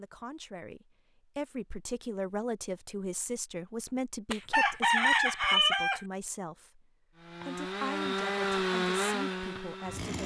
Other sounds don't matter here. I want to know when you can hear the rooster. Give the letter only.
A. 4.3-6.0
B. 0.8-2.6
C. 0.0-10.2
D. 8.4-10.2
A.